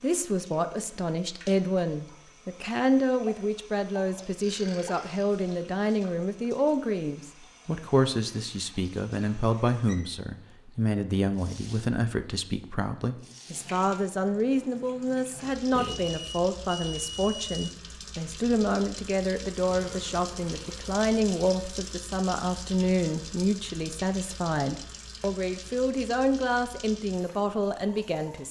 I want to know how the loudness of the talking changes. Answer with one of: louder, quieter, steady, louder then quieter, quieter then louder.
steady.